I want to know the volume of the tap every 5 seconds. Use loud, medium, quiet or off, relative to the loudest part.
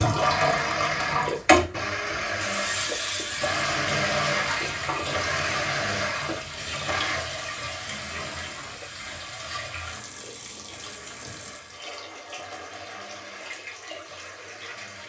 loud, medium, quiet.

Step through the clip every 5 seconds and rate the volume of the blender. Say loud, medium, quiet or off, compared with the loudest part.
loud, loud, quiet.